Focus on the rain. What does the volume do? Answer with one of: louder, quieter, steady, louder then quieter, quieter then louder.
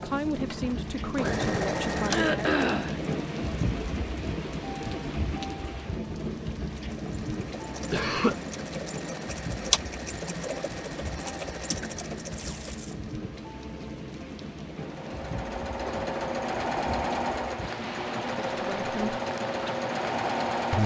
quieter.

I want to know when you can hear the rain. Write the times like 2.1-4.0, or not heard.
0.0-20.8.